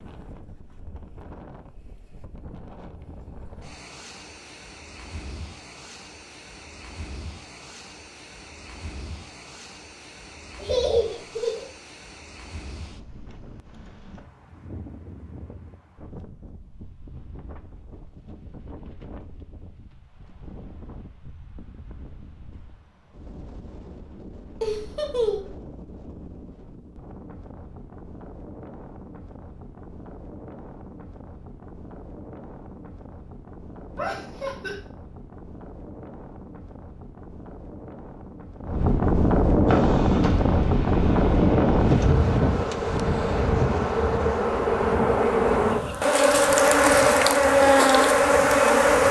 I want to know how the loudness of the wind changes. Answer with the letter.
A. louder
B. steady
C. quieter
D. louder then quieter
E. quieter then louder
A.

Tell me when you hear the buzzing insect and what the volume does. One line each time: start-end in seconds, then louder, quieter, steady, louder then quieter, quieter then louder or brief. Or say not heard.
39.6-49.0 louder.